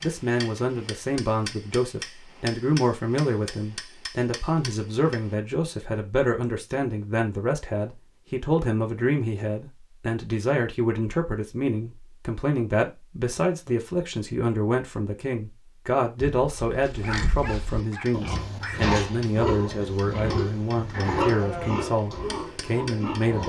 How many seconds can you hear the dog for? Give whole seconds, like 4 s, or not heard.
2 s.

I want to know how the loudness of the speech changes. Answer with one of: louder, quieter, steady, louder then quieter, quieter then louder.
steady.